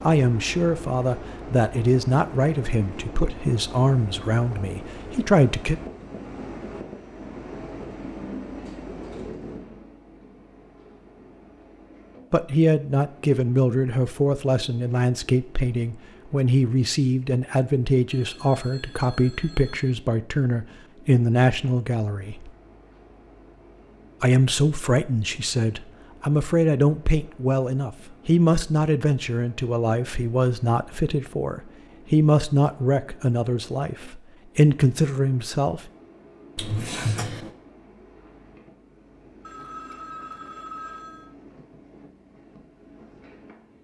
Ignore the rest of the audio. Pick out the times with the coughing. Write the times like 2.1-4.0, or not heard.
36.5-37.5.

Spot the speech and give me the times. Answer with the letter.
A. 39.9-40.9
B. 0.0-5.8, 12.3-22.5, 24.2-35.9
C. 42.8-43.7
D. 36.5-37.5
B.